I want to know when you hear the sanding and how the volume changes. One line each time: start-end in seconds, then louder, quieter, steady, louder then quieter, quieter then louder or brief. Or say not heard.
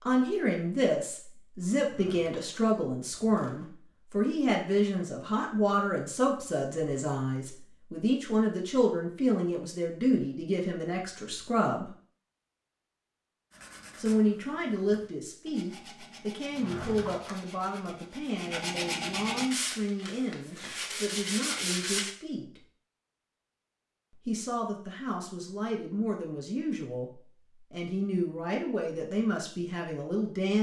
13.5-22.1 louder.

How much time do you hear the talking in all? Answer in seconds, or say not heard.
27 s.